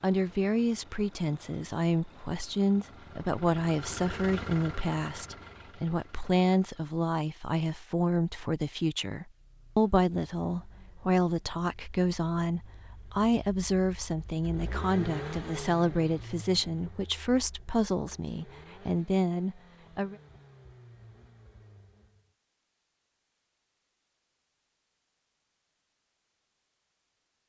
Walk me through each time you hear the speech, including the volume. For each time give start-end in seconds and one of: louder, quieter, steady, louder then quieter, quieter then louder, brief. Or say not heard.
0.0-20.1 steady.